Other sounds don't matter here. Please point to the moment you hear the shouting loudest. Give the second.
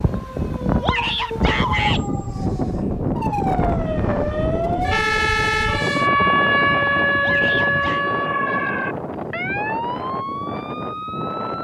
2 s.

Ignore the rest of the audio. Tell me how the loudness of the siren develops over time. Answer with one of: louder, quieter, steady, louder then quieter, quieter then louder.
louder then quieter.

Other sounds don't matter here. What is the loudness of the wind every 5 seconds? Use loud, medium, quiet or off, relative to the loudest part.
loud, loud, medium.